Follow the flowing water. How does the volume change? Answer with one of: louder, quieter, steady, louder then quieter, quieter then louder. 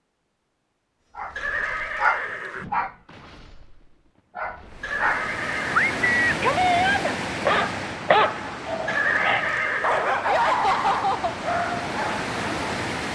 quieter then louder.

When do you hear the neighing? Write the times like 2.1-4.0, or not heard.
1.4-2.6, 4.8-6.2, 8.8-10.2.